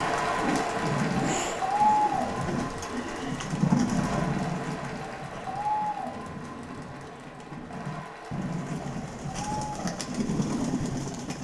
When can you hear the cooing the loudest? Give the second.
4 s.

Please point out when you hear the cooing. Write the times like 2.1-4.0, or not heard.
0.0-11.4.